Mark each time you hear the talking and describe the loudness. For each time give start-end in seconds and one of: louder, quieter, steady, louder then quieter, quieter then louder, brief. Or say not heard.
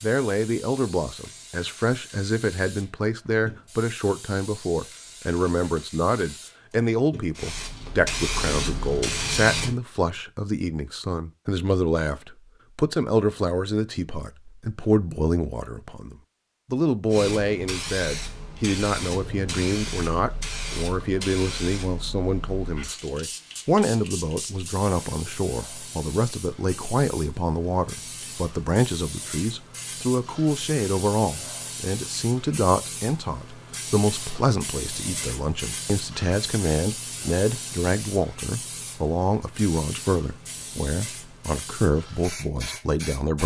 0.0-43.4 steady.